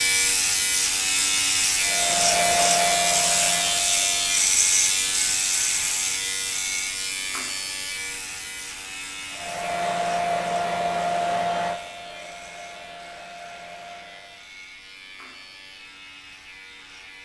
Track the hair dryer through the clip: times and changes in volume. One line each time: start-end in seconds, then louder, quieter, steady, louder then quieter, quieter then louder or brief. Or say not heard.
1.8-4.3 brief
9.3-14.4 quieter.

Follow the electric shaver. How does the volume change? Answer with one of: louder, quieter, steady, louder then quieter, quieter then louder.
quieter.